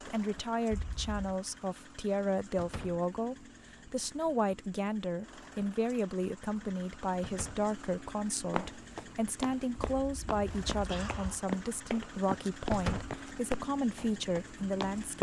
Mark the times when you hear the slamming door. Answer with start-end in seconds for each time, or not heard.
2.5-3.0, 7.2-7.7, 12.7-13.2.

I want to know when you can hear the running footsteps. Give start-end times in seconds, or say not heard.
8.5-15.1.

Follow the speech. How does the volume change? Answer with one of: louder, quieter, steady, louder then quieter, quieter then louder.
steady.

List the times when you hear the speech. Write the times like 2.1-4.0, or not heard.
0.1-15.1.